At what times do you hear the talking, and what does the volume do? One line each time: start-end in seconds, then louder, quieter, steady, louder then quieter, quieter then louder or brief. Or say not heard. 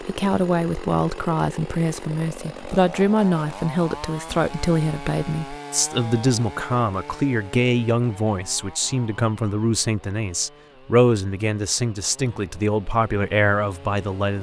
0.0-14.3 steady.